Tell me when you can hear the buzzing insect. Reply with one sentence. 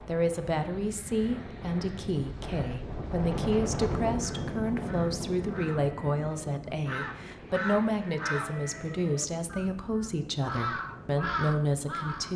You can't hear the buzzing insect here.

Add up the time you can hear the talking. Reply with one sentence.
You can hear the talking for 12 seconds altogether.